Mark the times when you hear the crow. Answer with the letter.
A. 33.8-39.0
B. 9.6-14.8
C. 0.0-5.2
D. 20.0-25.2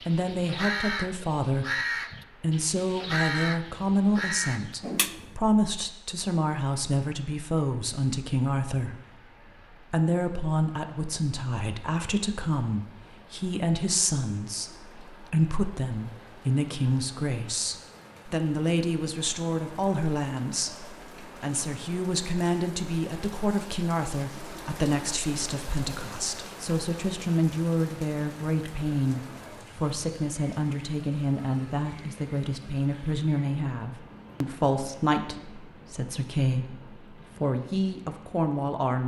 C.